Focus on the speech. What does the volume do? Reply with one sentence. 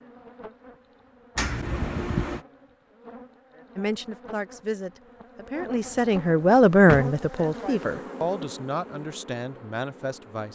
The volume of the speech goes up, then down.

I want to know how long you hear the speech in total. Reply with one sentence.
You can hear the speech for 7 seconds altogether.